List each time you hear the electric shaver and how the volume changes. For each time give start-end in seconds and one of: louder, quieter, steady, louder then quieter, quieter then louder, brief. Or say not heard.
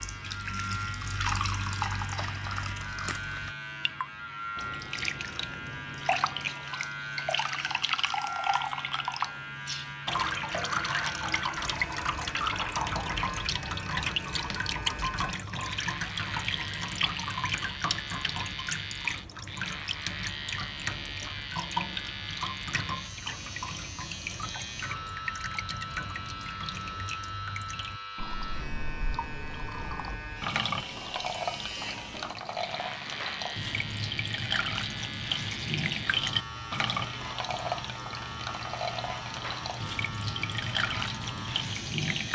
0.0-42.3 steady.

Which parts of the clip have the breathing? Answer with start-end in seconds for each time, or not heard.
not heard.